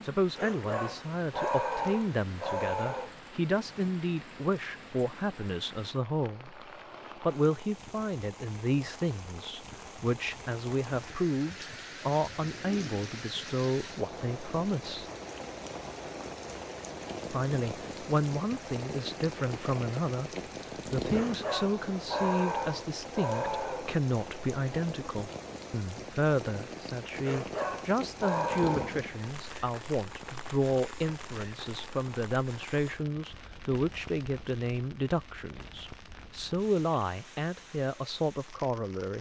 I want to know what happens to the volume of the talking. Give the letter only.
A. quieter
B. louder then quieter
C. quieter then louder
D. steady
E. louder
D.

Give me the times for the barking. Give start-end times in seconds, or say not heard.
0.3-3.1, 21.1-23.9, 27.2-29.1.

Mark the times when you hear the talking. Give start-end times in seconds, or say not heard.
0.0-6.6, 7.2-15.1, 17.3-20.3, 20.9-39.1.